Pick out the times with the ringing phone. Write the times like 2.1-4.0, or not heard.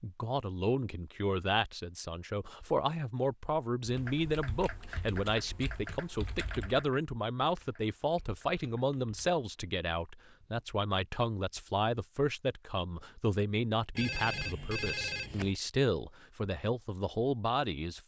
13.9-15.6.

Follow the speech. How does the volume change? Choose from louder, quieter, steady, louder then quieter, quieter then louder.
steady.